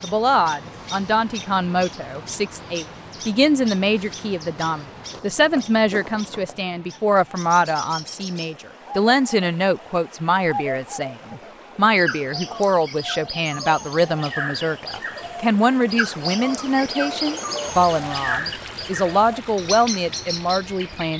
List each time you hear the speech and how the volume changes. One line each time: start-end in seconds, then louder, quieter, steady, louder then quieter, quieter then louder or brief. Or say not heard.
0.0-21.1 steady.